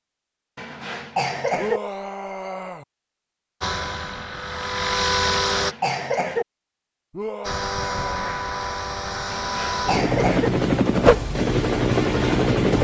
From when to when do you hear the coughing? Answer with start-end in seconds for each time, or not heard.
0.6-1.8, 5.3-6.5, 9.3-10.5.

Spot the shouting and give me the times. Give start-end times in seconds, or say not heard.
1.6-2.9, 7.1-8.4.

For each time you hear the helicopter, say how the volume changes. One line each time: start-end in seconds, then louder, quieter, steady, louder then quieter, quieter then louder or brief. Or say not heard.
3.6-5.8 brief
7.4-12.7 louder.